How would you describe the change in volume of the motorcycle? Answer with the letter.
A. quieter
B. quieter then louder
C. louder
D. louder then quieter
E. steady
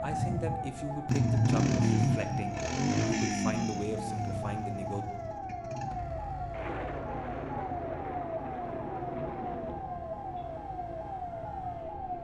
A.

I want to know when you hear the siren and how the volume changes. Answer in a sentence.
You can hear the siren from 0.0 to 12.1 s, at a steady volume.